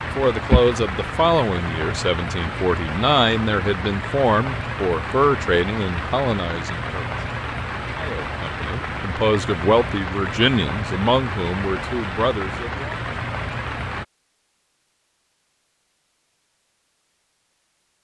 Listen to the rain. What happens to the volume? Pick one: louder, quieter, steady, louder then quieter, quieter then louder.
steady.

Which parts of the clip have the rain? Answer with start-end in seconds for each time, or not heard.
0.0-14.1.